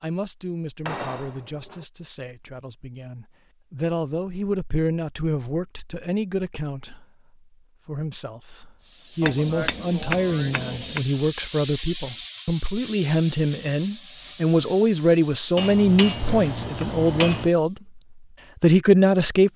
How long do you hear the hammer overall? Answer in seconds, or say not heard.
5 s.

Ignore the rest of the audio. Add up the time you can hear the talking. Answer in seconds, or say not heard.
18 s.